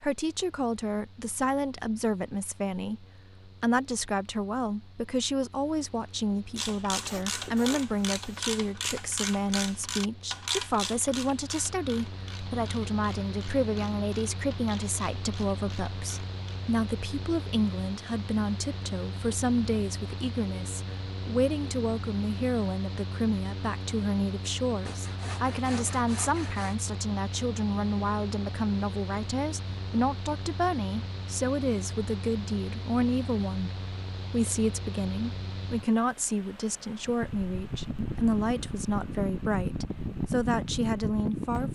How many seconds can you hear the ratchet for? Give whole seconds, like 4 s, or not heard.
10 s.